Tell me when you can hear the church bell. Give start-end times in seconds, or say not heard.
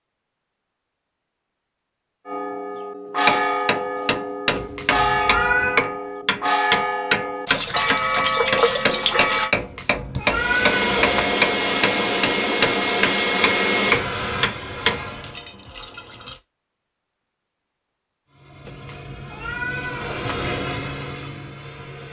2.2-9.6.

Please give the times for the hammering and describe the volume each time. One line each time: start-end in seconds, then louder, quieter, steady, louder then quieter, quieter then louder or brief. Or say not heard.
3.2-15.1 steady.